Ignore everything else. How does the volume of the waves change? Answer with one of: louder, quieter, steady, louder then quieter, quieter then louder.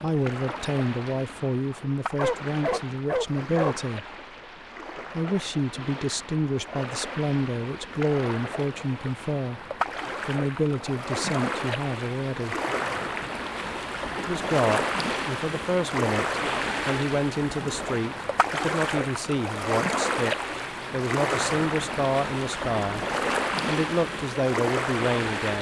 louder.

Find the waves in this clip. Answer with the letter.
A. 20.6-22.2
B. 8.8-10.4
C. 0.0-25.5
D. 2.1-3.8
C.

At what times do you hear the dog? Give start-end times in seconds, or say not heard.
2.1-3.8.